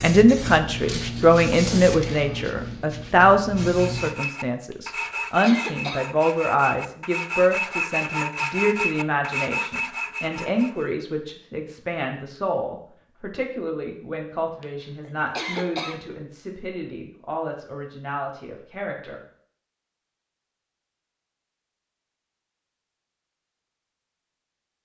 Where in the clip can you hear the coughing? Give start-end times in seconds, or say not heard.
4.7-6.0, 14.6-16.0.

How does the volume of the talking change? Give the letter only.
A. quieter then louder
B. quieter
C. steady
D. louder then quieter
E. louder
B.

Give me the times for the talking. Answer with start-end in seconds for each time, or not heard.
0.0-19.2.